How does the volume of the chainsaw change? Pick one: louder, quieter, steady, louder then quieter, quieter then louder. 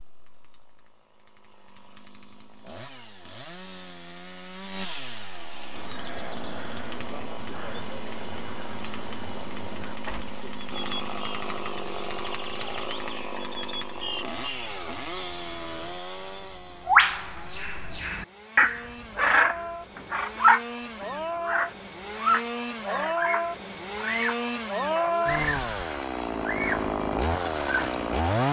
louder.